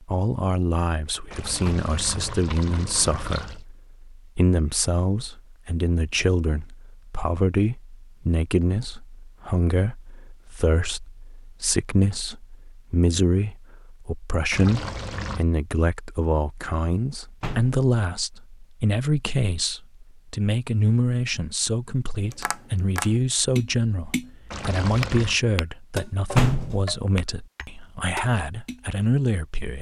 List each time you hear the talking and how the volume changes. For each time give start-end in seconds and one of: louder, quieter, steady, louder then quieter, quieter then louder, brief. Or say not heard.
0.0-29.7 steady.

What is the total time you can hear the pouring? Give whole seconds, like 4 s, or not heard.
4 s.